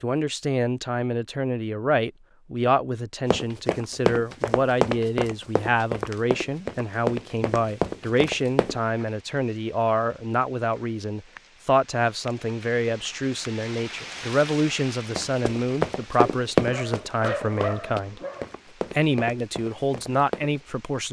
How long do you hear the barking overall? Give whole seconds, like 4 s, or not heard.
2 s.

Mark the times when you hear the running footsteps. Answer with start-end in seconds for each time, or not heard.
3.3-8.8, 15.2-20.6.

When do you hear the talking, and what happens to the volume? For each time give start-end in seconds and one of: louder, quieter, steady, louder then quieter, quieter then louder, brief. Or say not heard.
0.0-18.2 steady
18.9-21.0 brief.